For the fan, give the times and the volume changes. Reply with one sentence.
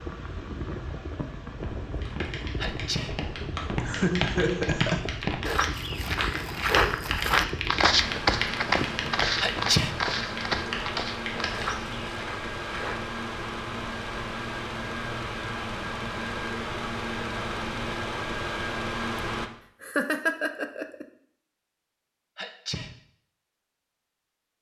The fan can be heard from 0.0 to 19.5 s, getting louder.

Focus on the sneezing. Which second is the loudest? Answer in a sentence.
The volume of the sneezing peaks at 10 seconds.